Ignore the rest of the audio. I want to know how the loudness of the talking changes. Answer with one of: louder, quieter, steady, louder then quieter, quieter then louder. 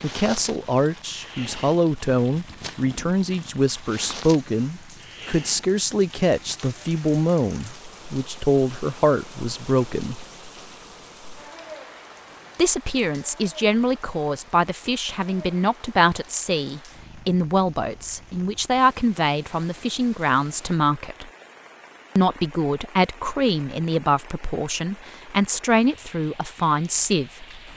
steady.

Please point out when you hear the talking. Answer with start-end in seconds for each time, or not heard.
0.0-10.2, 12.6-21.3, 22.1-27.6.